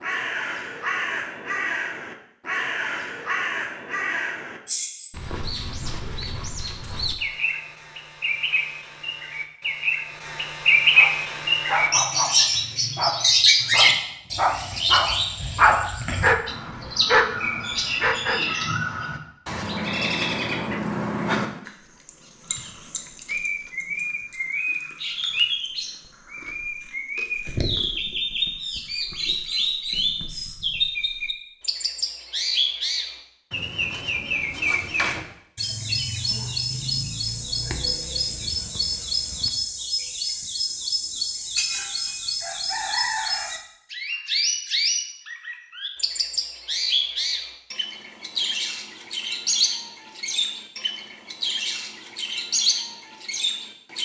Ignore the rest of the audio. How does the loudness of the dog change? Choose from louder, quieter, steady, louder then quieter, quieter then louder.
louder.